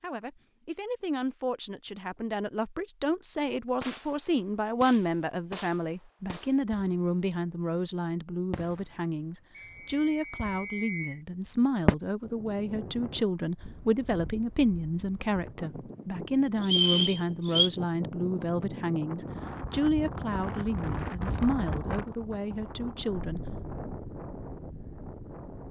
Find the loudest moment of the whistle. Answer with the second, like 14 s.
17 s.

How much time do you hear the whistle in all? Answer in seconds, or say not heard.
3 s.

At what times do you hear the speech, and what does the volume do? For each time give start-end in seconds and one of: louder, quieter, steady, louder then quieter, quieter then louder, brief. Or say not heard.
0.0-23.4 steady.